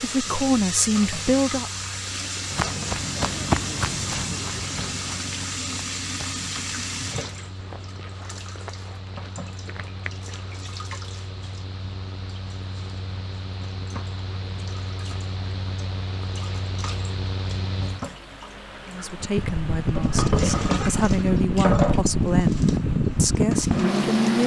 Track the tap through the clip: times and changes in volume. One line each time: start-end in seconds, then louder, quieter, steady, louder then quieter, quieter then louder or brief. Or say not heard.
0.0-24.4 quieter then louder.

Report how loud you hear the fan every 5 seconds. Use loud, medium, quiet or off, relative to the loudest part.
quiet, quiet, quiet, medium, loud.